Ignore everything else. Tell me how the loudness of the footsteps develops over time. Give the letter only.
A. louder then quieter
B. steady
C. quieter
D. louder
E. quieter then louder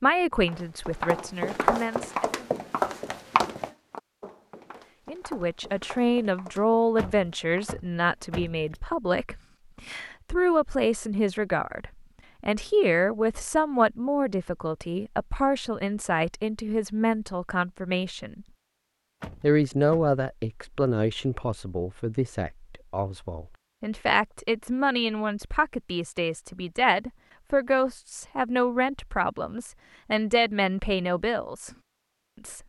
C.